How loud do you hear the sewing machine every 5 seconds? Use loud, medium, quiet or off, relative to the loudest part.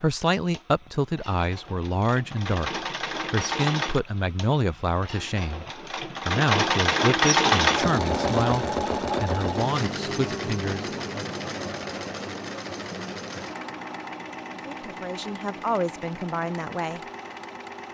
medium, loud, medium, quiet.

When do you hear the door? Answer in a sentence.
You can't hear the door here.